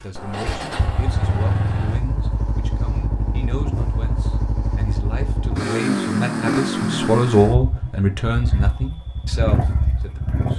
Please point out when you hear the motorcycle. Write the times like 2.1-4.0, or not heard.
0.0-10.5.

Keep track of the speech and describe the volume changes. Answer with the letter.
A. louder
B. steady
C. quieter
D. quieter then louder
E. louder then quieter
E.